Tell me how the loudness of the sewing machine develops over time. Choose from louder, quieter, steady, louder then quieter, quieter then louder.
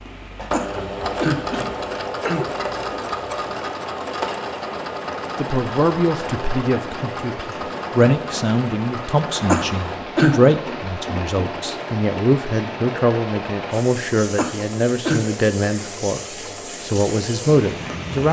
quieter.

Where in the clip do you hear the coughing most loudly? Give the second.
10 s.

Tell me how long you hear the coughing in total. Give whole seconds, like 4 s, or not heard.
4 s.